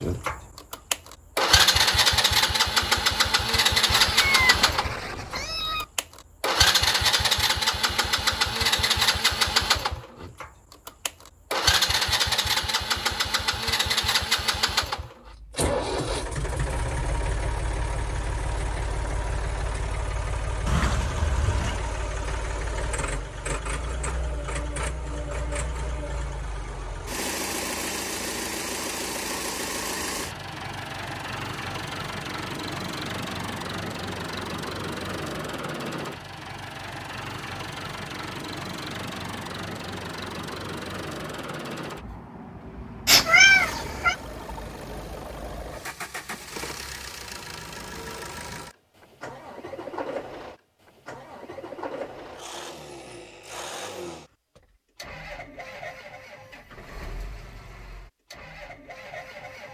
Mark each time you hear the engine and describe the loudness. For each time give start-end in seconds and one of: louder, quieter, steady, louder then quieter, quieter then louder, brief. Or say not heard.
0.0-59.6 quieter.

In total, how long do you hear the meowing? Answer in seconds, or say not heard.
4 s.